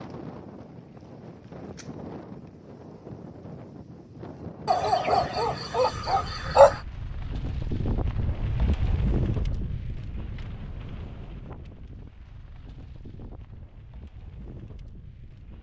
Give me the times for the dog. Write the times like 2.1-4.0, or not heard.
4.7-6.8.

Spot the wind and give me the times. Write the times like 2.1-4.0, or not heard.
0.0-15.5.